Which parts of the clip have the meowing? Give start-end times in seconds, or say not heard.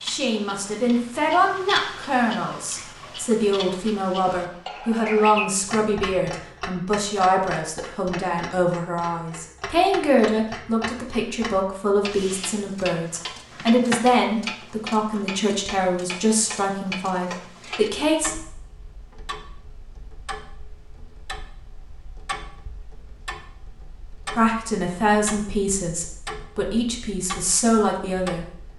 not heard.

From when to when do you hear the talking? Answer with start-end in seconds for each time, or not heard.
0.0-18.4, 24.4-28.4.